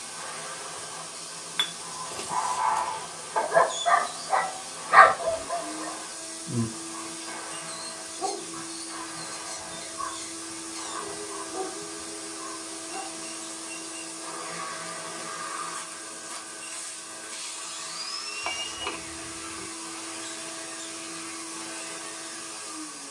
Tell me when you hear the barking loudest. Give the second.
5 s.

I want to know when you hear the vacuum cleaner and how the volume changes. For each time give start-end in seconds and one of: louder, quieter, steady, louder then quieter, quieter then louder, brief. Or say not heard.
0.0-23.0 steady.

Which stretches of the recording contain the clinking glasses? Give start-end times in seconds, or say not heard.
1.6-2.4, 18.4-19.7.